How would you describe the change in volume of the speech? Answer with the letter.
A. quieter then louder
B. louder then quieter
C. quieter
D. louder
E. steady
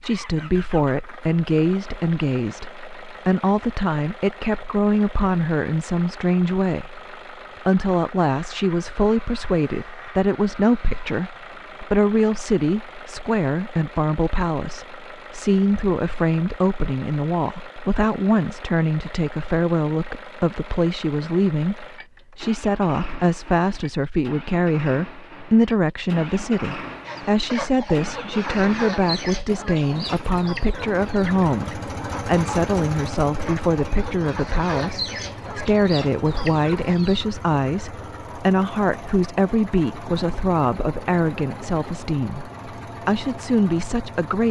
E.